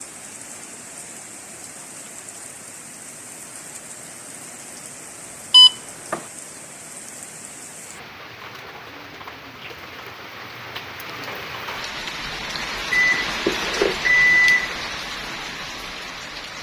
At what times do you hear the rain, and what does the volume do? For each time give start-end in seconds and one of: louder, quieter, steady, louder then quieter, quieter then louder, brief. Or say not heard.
0.0-16.5 louder.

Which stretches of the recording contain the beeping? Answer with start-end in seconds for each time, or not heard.
5.5-6.2, 12.9-14.7.